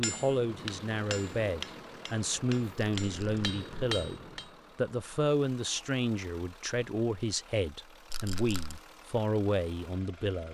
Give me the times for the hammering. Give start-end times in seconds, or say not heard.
0.0-4.5.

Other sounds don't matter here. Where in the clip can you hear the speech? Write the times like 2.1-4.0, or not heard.
0.0-10.4.